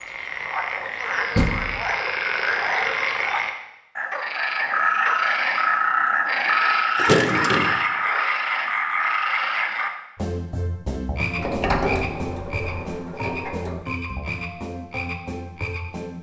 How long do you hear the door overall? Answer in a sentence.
The door can be heard for 4 seconds in total.